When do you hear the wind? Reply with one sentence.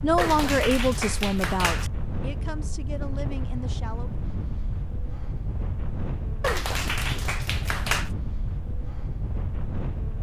You can hear the wind from 0.0 to 10.1 s.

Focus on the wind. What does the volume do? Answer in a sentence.
The volume of the wind stays about the same.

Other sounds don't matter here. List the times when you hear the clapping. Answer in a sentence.
You can hear the clapping from 0.1 to 1.9 s and from 6.4 to 8.1 s.